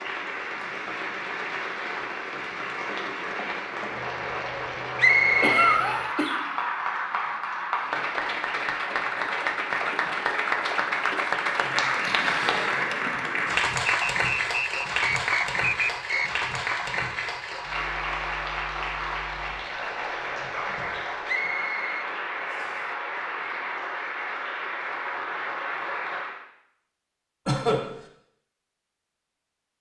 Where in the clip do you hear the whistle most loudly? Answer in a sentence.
The loudest moment of the whistle is at 5 seconds.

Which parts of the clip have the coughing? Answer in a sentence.
You can hear the coughing from 5.4 to 6.4 s and from 27.4 to 27.9 s.